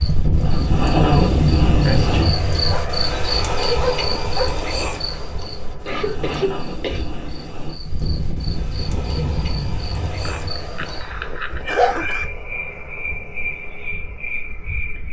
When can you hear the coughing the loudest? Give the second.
1 s.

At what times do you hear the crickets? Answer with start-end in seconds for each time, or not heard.
0.0-15.0.